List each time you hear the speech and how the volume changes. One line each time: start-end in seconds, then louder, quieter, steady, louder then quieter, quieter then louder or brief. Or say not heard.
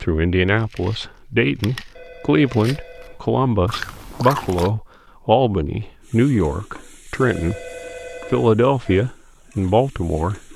0.0-7.7 steady
8.3-10.5 brief.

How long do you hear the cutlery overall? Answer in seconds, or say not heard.
not heard.